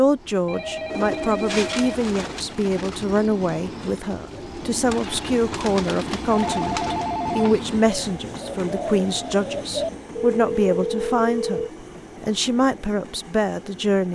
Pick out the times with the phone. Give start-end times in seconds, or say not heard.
0.5-2.0, 6.3-7.3, 10.2-11.7.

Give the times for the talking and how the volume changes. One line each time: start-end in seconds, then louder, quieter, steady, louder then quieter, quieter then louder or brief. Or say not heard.
0.0-14.1 steady.